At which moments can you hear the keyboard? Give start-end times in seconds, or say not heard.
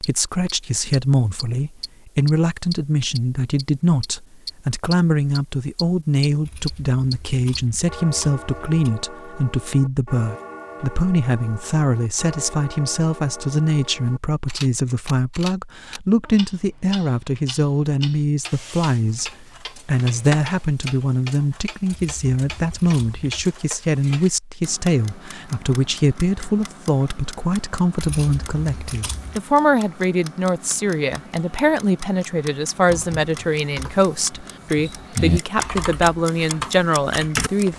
32.9-37.7.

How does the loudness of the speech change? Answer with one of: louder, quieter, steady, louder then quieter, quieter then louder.
steady.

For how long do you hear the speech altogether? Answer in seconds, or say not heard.
38 s.